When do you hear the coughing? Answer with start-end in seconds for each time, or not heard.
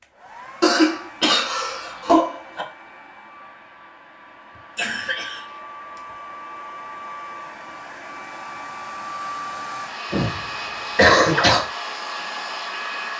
0.6-2.6, 4.8-5.5, 10.1-11.7.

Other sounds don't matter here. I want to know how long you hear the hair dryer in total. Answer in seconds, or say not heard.
13 s.